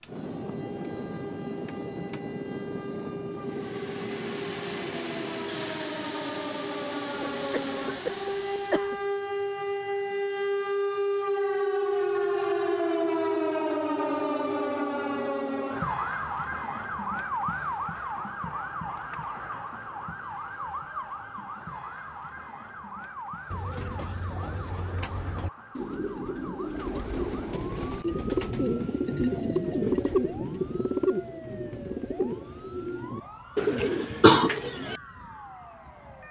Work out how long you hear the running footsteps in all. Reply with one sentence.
You can't hear the running footsteps here.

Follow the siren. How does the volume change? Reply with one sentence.
The volume of the siren goes up, then down.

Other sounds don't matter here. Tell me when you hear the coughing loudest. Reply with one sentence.
The volume of the coughing peaks at 34 seconds.